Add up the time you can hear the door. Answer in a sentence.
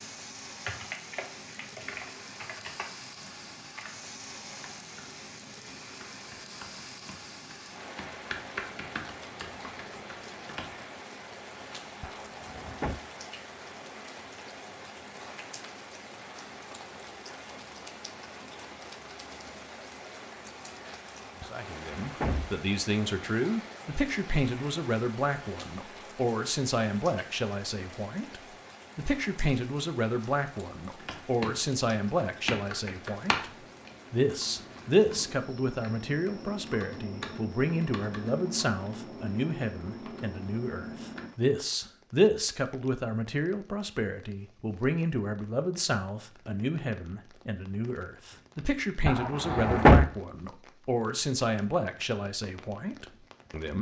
You can hear the door for 3 seconds altogether.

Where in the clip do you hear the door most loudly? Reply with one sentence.
The loudest moment of the door is at 50 seconds.